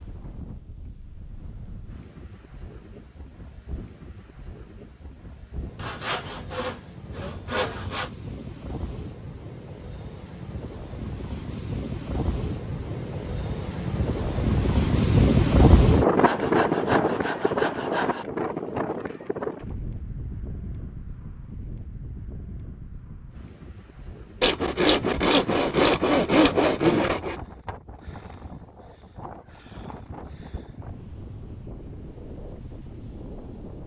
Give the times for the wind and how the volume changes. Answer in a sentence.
The wind can be heard from 0.0 to 33.8 s, getting louder then quieter.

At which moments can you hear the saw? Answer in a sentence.
You can hear the saw from 5.8 to 8.1 s, from 16.2 to 18.2 s and from 24.4 to 27.4 s.